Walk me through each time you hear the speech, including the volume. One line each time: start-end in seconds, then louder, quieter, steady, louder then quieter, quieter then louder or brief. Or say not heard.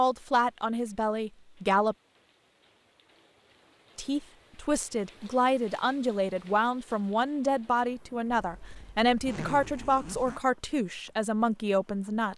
0.0-1.9 brief
4.0-12.3 steady.